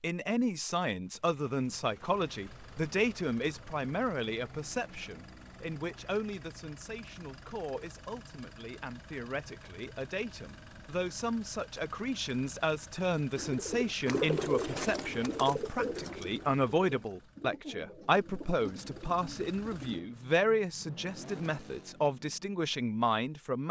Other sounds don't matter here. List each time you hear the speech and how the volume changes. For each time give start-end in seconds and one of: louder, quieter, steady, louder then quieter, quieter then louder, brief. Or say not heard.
0.0-23.6 quieter then louder.